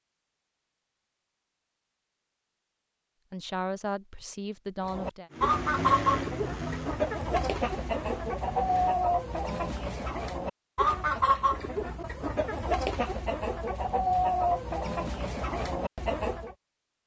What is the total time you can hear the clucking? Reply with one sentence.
The clucking can be heard for 12 seconds in total.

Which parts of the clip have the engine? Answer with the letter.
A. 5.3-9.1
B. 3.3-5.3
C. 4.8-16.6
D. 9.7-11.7
A.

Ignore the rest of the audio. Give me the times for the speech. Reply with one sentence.
You can hear the speech from 3.3 to 5.3 s.